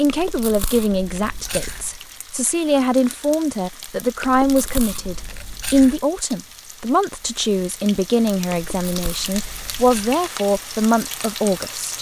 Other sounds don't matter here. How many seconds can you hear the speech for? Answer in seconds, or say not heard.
12 s.